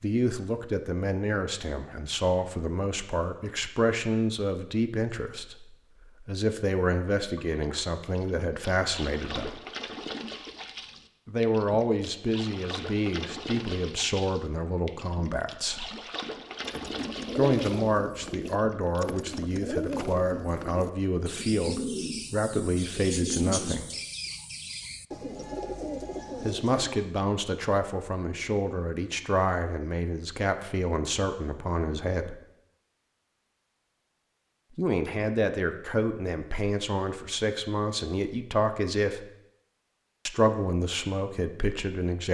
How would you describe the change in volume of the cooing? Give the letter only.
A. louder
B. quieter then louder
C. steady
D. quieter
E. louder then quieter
C.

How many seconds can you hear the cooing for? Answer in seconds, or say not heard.
10 s.